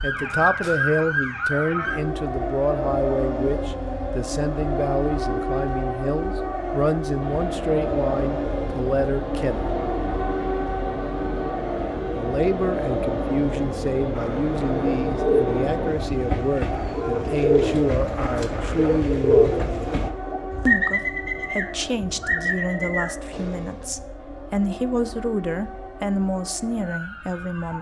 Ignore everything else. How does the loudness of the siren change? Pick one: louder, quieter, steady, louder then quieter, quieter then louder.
quieter.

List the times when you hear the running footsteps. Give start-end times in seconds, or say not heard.
not heard.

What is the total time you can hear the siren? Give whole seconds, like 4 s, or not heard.
28 s.